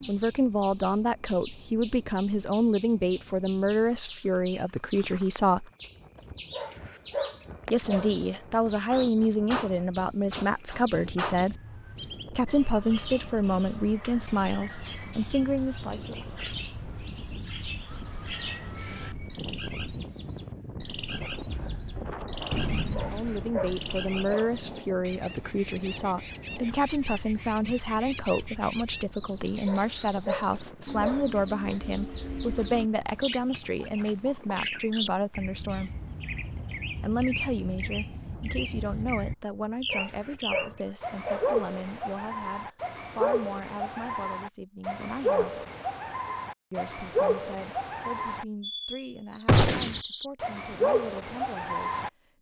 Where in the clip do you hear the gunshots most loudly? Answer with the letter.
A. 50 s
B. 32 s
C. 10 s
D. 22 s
A.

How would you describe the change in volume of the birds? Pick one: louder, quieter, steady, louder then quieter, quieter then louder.
louder.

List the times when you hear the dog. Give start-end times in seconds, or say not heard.
6.5-8.2, 22.9-24.6, 29.6-31.3, 39.9-41.5.